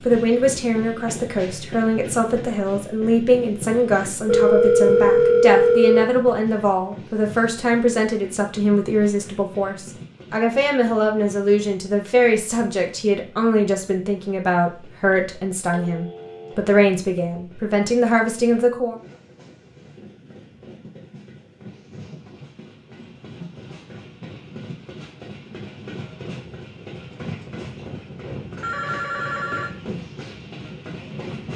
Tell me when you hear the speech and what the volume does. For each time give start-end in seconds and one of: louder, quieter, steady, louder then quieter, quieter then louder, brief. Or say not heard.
0.1-18.9 steady.